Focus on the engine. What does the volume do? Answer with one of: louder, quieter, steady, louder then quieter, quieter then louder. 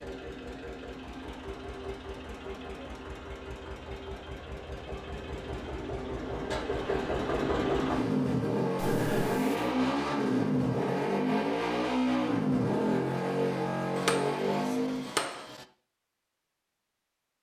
louder.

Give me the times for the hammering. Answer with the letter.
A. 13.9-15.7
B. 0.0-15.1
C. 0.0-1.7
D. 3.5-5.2
A.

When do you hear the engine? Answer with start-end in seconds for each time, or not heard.
0.0-15.1.